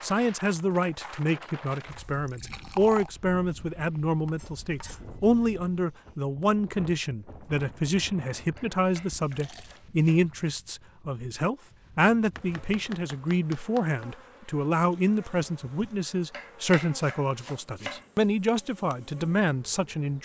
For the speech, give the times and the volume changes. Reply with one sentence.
The speech can be heard from 0.0 to 20.2 s, at a steady volume.